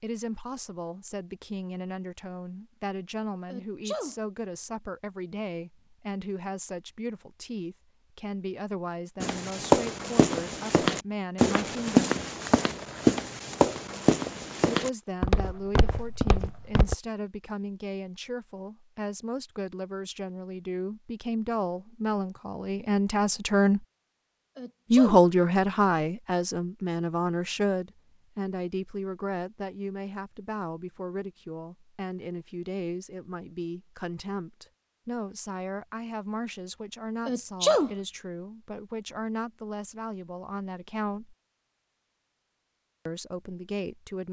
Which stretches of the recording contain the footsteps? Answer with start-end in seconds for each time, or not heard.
9.2-16.9.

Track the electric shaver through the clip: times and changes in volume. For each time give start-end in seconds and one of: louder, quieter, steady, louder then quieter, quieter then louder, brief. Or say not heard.
not heard.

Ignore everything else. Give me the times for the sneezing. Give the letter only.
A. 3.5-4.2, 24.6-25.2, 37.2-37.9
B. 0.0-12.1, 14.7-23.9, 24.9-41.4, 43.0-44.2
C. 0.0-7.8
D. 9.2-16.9
A.